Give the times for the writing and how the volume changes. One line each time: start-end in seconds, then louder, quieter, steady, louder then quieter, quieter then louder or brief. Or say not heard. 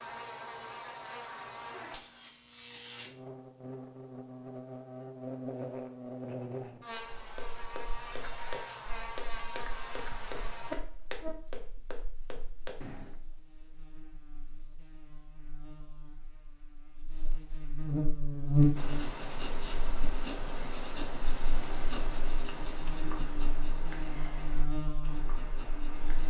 18.8-26.2 quieter.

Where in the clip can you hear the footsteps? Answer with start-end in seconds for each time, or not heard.
7.2-13.1.